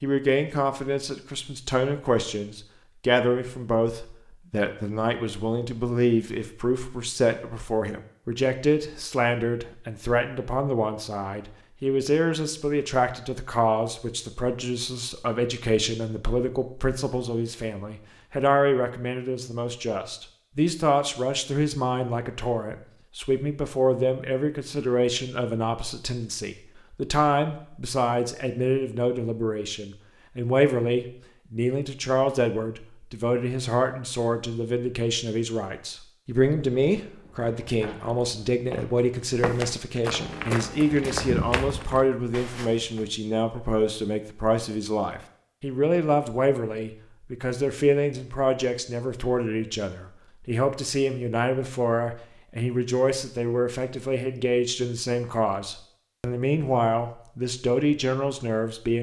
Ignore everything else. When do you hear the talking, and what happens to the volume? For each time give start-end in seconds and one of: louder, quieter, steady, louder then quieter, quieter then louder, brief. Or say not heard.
0.0-58.9 steady.